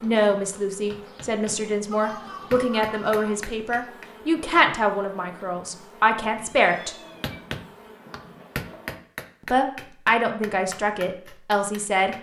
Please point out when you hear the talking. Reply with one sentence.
The talking can be heard from 0.0 to 7.0 s and from 9.5 to 12.1 s.